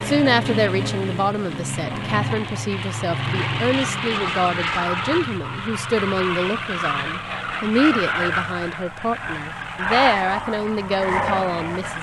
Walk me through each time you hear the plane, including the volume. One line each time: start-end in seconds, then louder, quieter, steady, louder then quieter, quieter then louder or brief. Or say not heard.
0.0-11.9 steady.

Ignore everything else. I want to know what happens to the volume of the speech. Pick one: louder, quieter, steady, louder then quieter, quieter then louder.
steady.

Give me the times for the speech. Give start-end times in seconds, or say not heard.
0.1-11.9.